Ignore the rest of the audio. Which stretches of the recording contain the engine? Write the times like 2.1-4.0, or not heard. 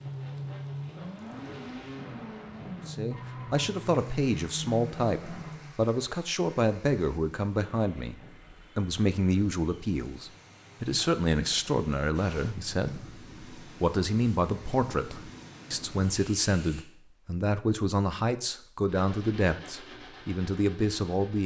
0.0-5.7, 18.9-21.4.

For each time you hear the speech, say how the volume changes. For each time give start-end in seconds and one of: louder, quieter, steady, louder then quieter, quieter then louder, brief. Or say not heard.
2.9-21.4 steady.